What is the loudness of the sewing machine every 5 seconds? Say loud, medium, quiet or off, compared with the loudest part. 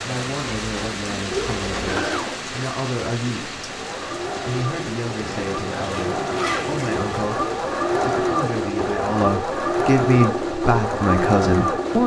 medium, loud, loud.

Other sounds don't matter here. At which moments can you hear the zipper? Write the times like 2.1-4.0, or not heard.
5.2-7.2.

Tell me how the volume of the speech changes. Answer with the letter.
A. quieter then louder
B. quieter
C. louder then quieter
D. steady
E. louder
E.